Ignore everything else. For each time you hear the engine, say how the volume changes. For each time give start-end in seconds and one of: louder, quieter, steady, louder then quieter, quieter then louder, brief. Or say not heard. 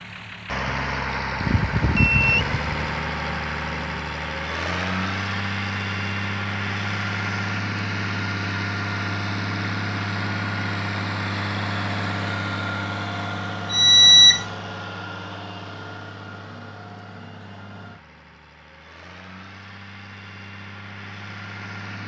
0.0-22.0 quieter.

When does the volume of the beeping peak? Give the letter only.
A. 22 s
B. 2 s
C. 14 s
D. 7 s
C.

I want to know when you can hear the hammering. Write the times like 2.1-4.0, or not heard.
not heard.